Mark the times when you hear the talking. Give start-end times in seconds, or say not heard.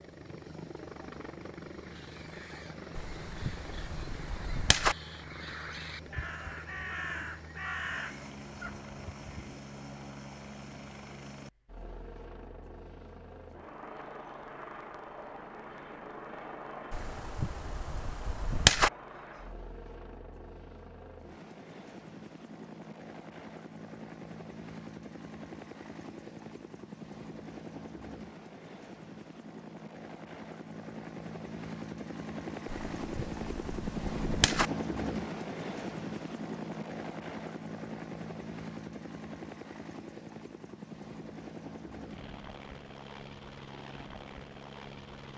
not heard.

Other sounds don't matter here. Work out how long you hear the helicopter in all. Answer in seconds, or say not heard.
45 s.